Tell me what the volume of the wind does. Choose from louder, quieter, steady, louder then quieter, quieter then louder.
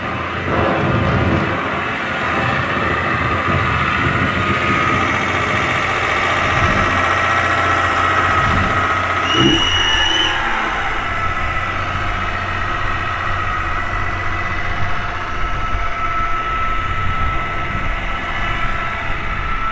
quieter.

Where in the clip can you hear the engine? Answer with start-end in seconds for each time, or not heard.
0.0-19.6.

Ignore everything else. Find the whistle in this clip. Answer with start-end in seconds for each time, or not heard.
9.2-10.4.